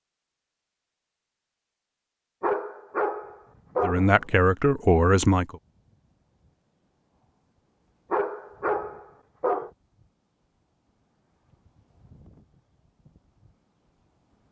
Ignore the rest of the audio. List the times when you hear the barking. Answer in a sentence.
You can hear the barking from 2.4 to 4.2 s and from 8.1 to 9.7 s.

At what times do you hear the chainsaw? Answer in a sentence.
You can't hear the chainsaw here.